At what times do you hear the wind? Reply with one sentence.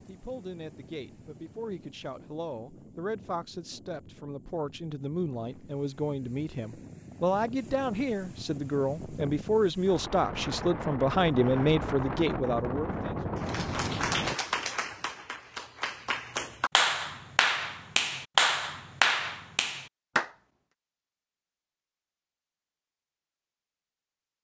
The wind can be heard from 0.0 to 14.3 s.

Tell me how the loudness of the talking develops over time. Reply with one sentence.
The volume of the talking goes up.